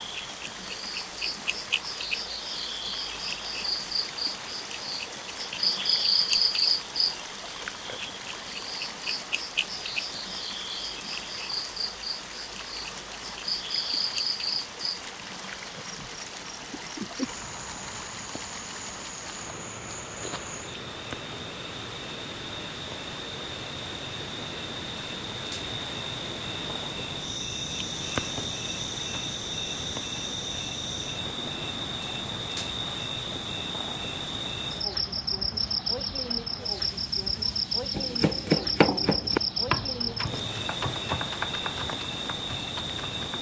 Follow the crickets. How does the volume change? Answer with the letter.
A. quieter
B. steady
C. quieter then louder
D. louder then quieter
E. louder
C.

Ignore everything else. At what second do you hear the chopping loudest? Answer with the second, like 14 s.
39 s.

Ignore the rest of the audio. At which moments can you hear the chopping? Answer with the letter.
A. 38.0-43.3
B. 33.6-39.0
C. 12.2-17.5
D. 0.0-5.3
A.